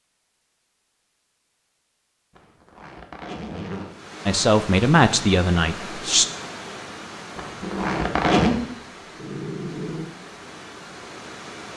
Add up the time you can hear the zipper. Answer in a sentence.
The zipper can be heard for 3 seconds in total.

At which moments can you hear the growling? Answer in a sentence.
You can hear the growling from 7.6 to 10.1 s.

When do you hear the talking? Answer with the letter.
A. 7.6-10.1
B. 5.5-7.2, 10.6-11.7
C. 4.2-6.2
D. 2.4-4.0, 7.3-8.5
C.